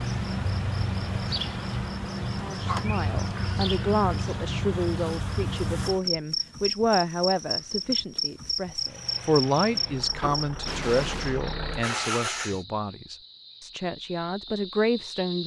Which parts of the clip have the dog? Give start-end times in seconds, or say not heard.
not heard.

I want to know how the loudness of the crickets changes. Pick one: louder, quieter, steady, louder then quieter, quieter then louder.
quieter.